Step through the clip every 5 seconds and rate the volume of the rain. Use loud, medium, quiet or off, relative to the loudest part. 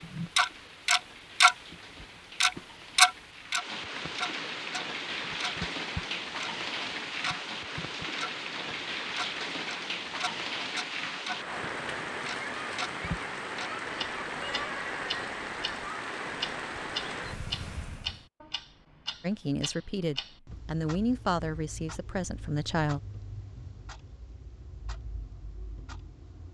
medium, loud, loud, loud, off, off.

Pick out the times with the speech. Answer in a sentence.
The speech can be heard from 19.2 to 23.0 s.